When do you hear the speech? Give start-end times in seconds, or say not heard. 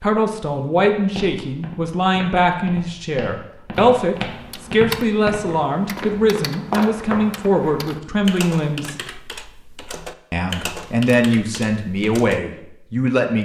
0.0-8.9, 10.3-13.3.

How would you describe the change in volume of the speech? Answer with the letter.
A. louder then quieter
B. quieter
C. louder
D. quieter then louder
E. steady
E.